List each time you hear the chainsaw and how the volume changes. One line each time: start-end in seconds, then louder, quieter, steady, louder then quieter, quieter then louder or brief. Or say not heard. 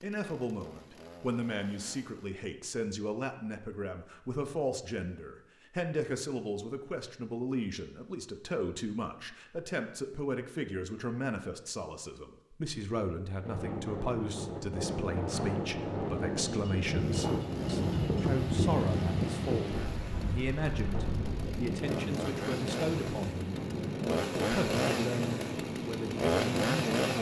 0.0-2.4 brief
16.9-27.1 louder.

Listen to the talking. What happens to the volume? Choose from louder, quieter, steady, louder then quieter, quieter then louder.
steady.